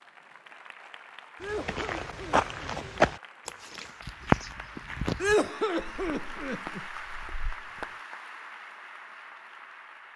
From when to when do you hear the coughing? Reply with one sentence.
You can hear the coughing from 1.4 to 2.8 s and from 5.2 to 6.8 s.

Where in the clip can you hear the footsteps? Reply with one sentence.
The footsteps can be heard from 1.4 to 7.8 s.